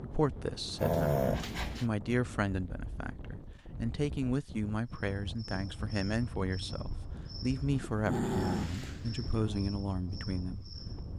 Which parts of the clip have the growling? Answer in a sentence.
The growling can be heard from 0.8 to 1.9 s and from 7.8 to 9.6 s.